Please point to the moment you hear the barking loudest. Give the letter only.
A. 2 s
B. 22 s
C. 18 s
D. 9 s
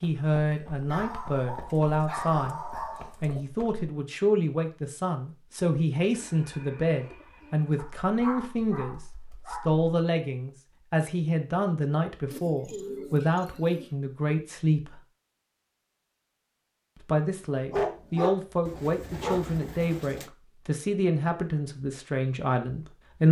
C.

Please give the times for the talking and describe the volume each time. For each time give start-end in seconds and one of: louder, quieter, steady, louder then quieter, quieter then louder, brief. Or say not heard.
0.0-15.0 steady
17.0-23.2 steady.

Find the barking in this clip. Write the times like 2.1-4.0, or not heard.
0.9-3.1, 7.8-9.8, 17.7-19.4.